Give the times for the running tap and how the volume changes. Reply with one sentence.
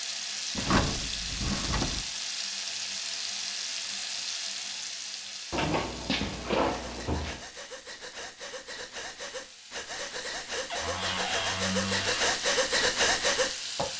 You can hear the running tap from 0.0 to 13.9 s, getting quieter then louder.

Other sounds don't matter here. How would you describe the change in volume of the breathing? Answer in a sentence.
The volume of the breathing goes up.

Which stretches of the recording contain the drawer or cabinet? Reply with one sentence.
You can hear the drawer or cabinet from 0.6 to 2.0 s, from 5.5 to 7.5 s and from 10.7 to 12.3 s.